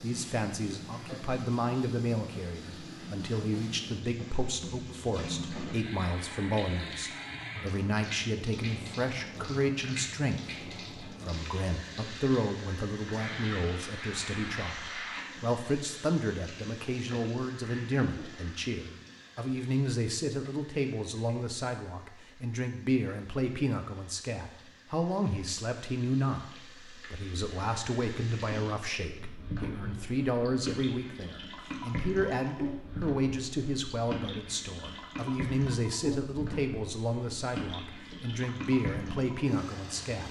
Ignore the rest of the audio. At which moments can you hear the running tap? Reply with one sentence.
You can hear the running tap from 0.0 to 40.2 s.